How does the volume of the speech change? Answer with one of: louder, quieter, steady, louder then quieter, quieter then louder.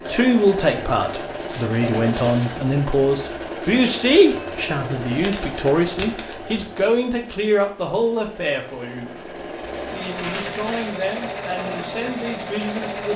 quieter.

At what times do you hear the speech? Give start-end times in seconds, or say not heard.
0.1-13.1.